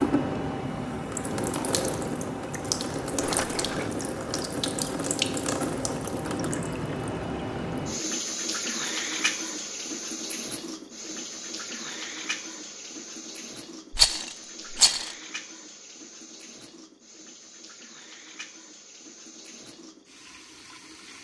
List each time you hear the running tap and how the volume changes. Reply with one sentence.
You can hear the running tap from 0.0 to 21.2 s, getting quieter.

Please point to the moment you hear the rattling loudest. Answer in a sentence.
The volume of the rattling peaks at 14 seconds.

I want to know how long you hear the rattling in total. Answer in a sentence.
The rattling can be heard for 2 seconds in total.